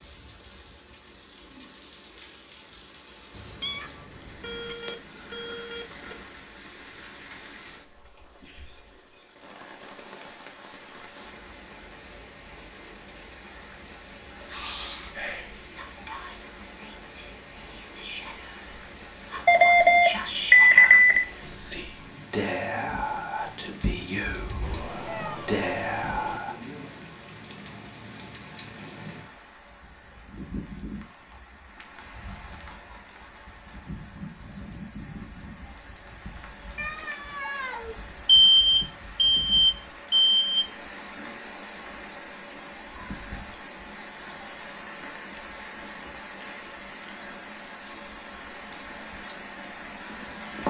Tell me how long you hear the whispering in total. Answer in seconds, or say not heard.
12 s.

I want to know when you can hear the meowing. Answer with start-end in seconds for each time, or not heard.
3.3-4.8, 24.6-26.4, 36.8-38.0.